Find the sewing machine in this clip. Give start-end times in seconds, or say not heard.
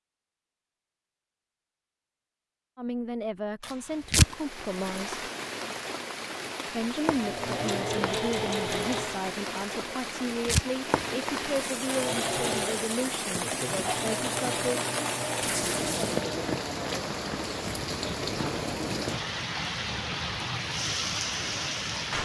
7.2-9.2, 11.8-16.6.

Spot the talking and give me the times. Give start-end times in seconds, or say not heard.
2.8-5.2, 6.7-14.8.